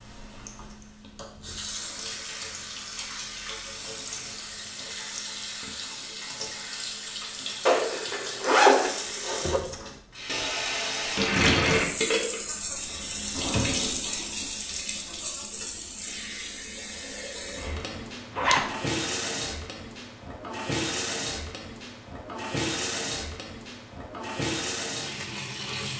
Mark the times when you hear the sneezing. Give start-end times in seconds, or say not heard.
not heard.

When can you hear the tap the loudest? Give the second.
12 s.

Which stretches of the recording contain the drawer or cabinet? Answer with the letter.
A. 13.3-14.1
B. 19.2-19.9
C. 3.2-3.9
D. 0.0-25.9
A.